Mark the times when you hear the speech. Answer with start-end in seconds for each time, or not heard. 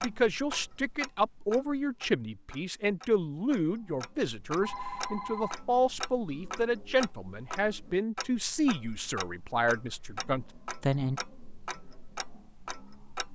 0.0-11.2.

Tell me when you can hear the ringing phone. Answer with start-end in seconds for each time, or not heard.
4.6-5.6.